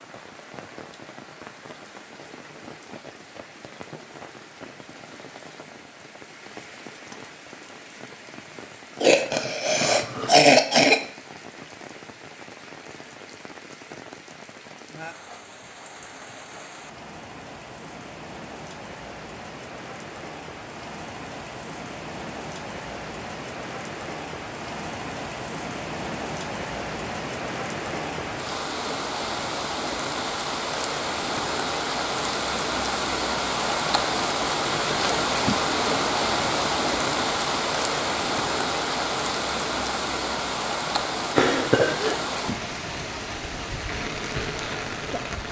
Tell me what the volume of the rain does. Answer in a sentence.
The loudness of the rain goes up.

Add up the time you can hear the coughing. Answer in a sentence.
You can hear the coughing for 3 seconds altogether.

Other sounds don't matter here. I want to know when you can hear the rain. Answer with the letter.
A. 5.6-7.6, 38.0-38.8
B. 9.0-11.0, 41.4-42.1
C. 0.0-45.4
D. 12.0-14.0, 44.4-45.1
C.